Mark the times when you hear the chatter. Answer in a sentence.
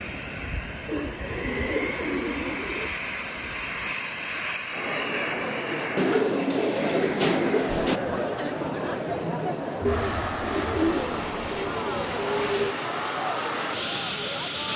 The chatter can be heard from 4.7 to 14.7 s.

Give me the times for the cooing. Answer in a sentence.
The cooing can be heard from 0.8 to 2.9 s, from 6.0 to 8.0 s and from 9.8 to 12.8 s.